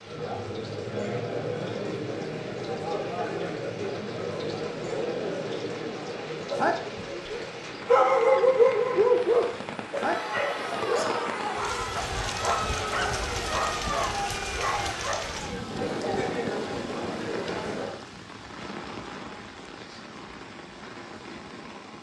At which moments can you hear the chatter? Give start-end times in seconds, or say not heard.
0.0-18.0.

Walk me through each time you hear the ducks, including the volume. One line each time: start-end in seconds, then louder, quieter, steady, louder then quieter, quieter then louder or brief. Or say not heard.
not heard.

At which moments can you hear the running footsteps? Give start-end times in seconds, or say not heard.
not heard.